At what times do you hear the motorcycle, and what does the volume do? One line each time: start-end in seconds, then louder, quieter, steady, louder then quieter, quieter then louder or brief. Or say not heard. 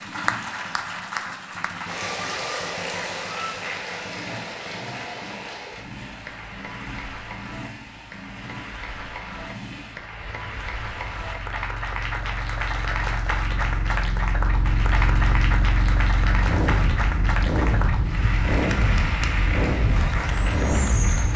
0.0-21.3 louder.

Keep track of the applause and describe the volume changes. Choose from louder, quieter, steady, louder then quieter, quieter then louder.
quieter then louder.